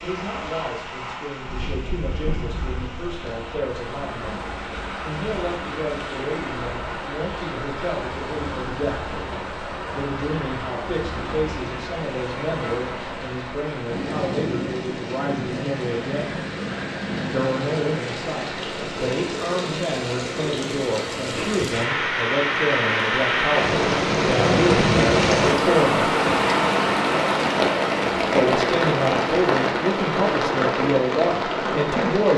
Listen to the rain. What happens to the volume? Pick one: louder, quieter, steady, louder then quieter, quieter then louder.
louder.